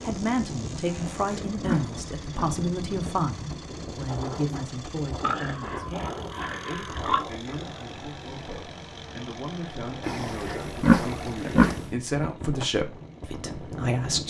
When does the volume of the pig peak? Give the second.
11 s.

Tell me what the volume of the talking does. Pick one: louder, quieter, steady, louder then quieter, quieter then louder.
quieter then louder.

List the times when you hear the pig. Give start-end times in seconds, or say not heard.
0.8-2.5, 5.2-7.2, 10.1-11.8.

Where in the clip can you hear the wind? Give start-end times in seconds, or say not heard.
0.0-14.2.